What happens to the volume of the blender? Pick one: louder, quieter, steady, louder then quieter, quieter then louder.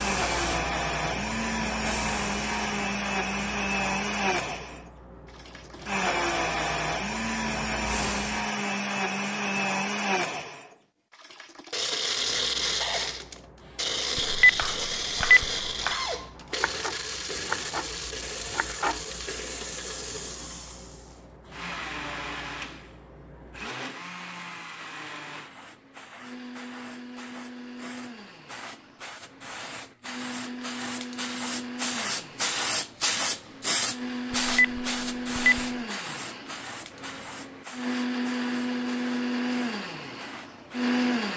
quieter then louder.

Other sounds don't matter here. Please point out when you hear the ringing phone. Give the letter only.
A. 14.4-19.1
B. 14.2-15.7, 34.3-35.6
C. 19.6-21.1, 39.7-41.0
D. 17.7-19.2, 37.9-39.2
B.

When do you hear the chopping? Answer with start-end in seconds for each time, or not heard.
14.4-19.1.